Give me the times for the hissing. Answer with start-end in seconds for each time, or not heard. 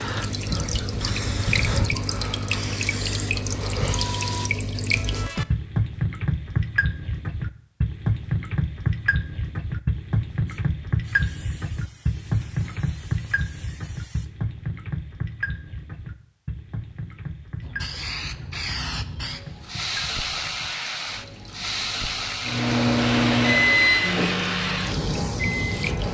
0.0-4.5, 10.4-14.3, 17.6-26.0.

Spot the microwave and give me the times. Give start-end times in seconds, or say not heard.
22.4-26.0.